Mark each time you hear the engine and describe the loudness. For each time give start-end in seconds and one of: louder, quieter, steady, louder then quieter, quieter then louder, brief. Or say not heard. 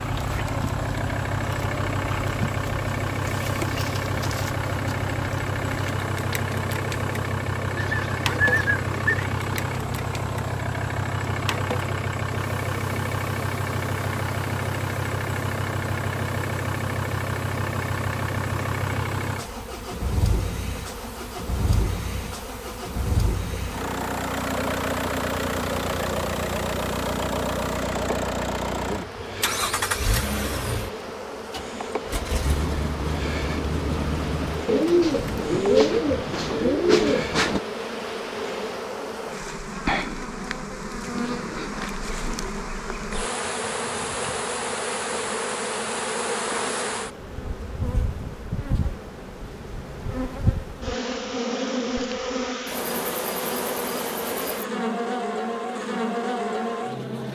0.0-35.5 steady.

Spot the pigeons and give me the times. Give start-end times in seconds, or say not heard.
7.8-9.3, 34.6-37.6.